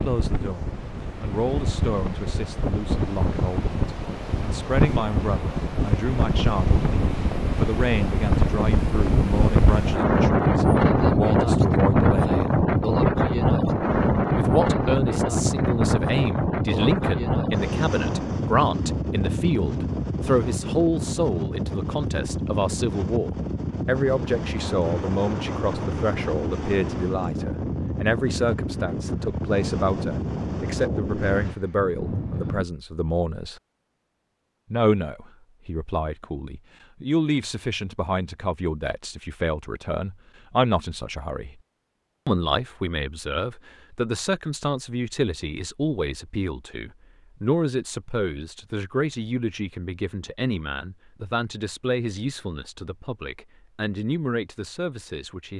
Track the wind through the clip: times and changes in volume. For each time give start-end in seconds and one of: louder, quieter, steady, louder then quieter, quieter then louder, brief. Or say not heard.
0.0-32.6 louder then quieter.